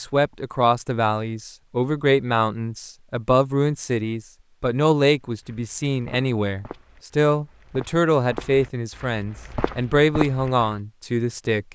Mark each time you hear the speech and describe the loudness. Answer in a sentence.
The speech can be heard from 0.0 to 11.7 s, at a steady volume.